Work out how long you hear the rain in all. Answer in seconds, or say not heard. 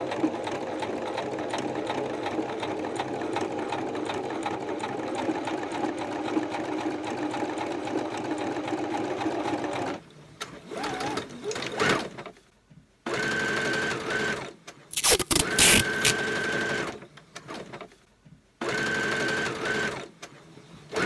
not heard.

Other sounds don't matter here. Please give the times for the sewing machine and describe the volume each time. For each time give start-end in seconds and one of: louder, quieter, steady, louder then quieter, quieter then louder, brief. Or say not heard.
0.0-21.0 steady.